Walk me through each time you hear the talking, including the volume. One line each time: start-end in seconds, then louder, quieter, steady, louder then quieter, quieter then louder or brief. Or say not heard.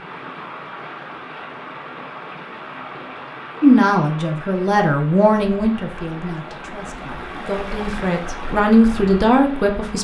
3.6-9.9 quieter then louder.